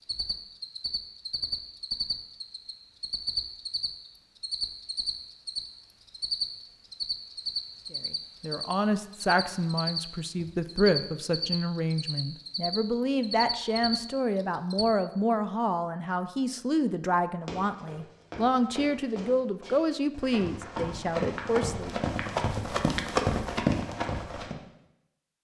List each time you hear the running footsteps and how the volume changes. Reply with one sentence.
The running footsteps can be heard from 17.4 to 24.6 s, getting louder.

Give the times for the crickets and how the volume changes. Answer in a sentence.
The crickets can be heard from 0.0 to 14.8 s, at a steady volume.